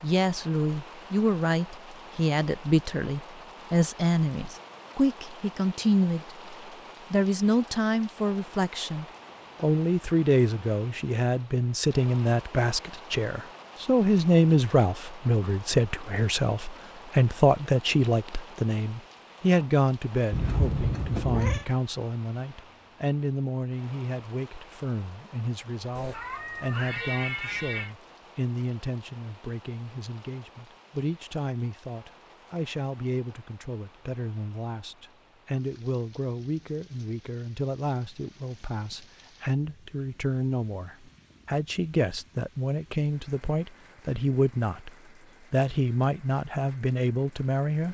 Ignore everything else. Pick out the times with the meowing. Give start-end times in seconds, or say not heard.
20.3-21.6, 25.9-27.9.